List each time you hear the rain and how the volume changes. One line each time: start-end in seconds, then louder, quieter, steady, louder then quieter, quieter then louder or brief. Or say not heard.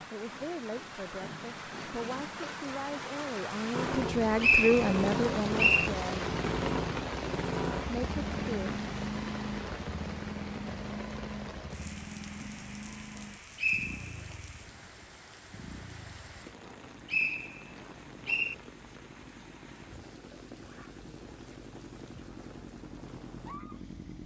0.0-24.2 quieter.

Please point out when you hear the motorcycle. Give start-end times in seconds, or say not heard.
3.7-24.2.